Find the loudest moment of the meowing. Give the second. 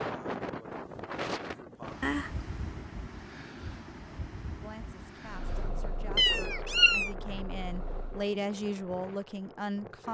7 s.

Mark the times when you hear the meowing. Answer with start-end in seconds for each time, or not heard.
2.0-2.5, 6.2-7.1.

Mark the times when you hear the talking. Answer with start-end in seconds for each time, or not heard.
4.6-10.0.